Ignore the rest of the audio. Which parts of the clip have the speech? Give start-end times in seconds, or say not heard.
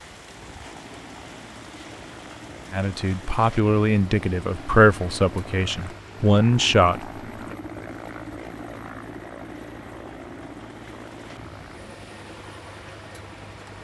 2.7-7.5.